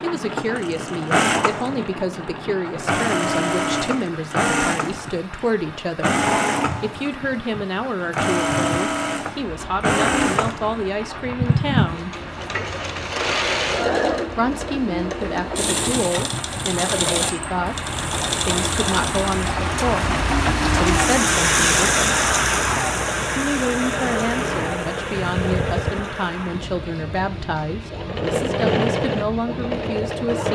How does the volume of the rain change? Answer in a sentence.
The volume of the rain goes up, then down.